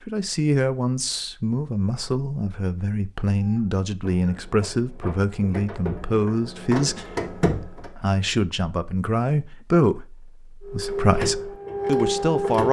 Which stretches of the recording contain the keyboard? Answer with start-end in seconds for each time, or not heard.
not heard.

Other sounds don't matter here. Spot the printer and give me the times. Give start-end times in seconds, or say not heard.
3.4-7.9, 10.7-12.6.